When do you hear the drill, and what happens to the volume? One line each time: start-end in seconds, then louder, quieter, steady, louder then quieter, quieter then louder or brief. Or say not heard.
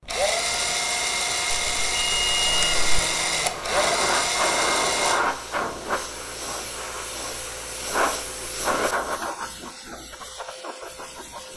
0.0-5.2 steady.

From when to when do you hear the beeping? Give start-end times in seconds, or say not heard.
1.5-2.9.